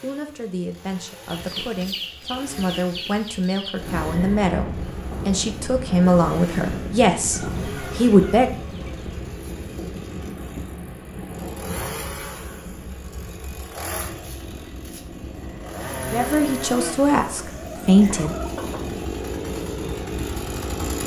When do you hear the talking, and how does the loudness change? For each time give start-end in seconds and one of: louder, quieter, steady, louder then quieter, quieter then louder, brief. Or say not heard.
0.0-8.5 louder
16.1-18.4 brief.